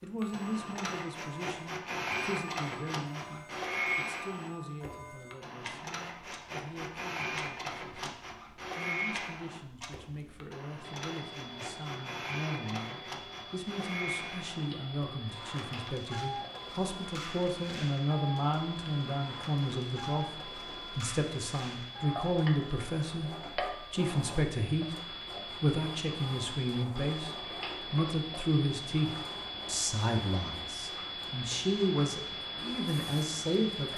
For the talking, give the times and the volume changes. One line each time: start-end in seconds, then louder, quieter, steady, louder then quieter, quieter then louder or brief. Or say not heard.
0.0-8.1 quieter
8.8-33.9 louder.